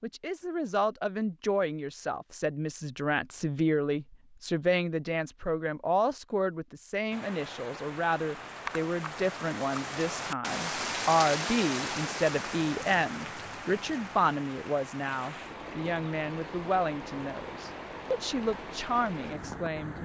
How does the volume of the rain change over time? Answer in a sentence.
The volume of the rain goes up, then down.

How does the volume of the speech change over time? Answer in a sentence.
The loudness of the speech stays about the same.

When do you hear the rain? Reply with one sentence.
You can hear the rain from 7.1 to 19.9 s.